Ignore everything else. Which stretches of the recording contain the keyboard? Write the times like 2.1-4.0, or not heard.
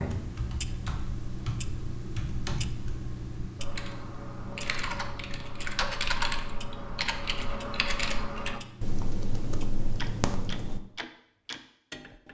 0.0-10.8.